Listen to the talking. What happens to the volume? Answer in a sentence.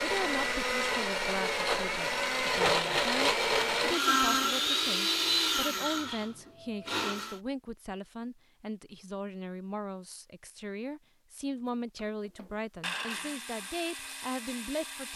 The loudness of the talking stays about the same.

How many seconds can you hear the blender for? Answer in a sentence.
You can hear the blender for 10 seconds altogether.